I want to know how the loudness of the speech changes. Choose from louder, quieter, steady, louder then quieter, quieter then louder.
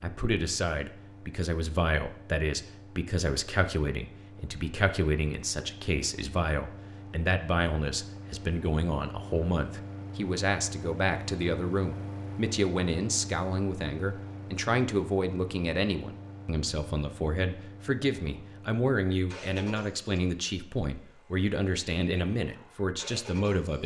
steady.